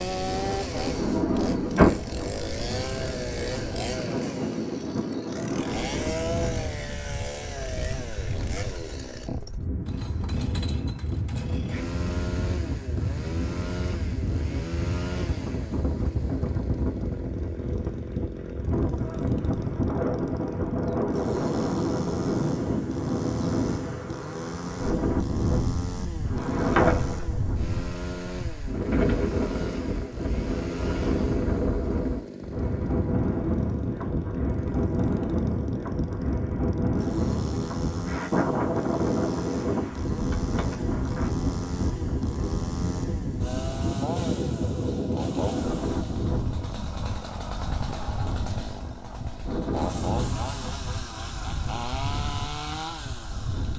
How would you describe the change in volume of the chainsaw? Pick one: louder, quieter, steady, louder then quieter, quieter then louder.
steady.